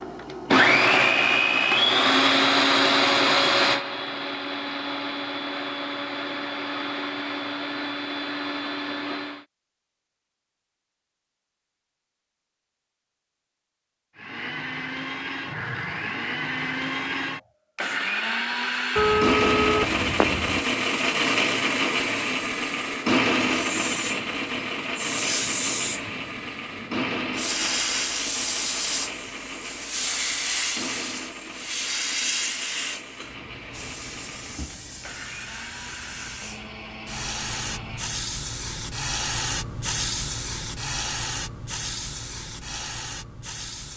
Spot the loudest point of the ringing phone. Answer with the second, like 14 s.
19 s.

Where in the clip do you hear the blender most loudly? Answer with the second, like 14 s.
1 s.